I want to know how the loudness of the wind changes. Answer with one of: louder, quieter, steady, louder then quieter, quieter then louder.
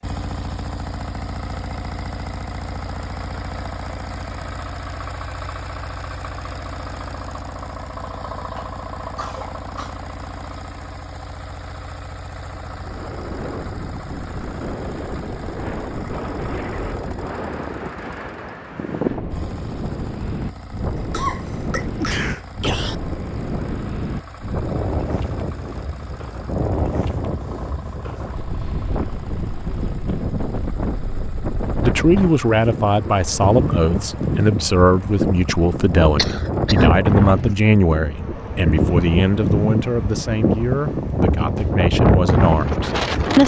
louder.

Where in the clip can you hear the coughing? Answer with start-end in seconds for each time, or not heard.
8.6-9.9, 20.9-22.9, 36.1-37.0.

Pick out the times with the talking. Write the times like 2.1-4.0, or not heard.
31.8-43.4.